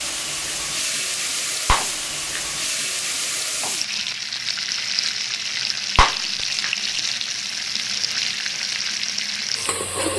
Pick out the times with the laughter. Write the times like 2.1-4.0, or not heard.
not heard.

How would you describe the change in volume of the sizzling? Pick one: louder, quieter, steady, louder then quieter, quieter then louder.
steady.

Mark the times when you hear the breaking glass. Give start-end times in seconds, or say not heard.
1.6-2.6, 6.0-6.9.